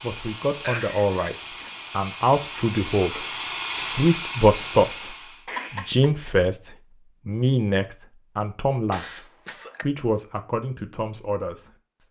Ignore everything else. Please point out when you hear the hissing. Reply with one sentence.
You can hear the hissing from 0.0 to 5.5 s.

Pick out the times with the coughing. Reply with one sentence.
The coughing can be heard from 0.6 to 1.8 s, from 5.5 to 6.1 s and from 8.9 to 9.8 s.